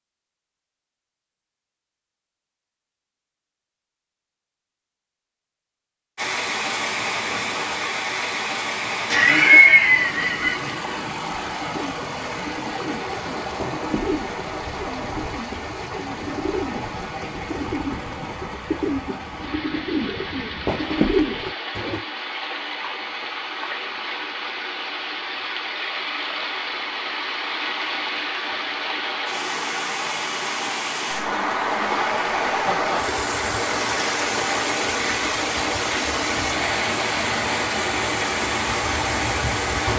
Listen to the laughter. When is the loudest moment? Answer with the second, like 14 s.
10 s.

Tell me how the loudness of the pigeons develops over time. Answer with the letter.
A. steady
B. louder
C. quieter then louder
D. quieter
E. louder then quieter
B.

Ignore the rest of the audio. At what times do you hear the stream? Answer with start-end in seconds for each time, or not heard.
6.2-39.9.